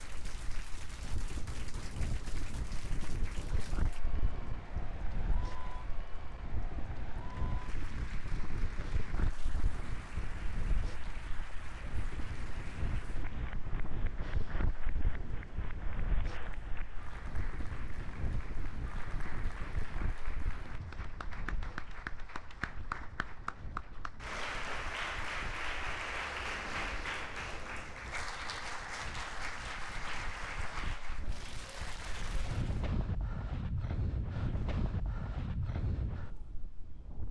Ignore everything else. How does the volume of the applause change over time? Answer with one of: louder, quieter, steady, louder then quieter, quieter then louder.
louder.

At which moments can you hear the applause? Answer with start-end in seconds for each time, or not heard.
0.0-32.9.